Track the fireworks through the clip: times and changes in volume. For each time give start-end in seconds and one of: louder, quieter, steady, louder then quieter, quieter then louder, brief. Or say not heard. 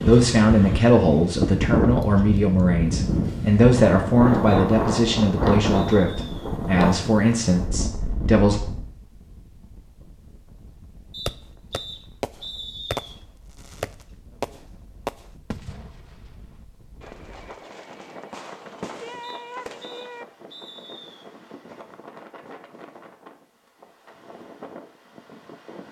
11.2-20.2 quieter then louder.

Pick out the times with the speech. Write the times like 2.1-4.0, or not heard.
0.0-8.6.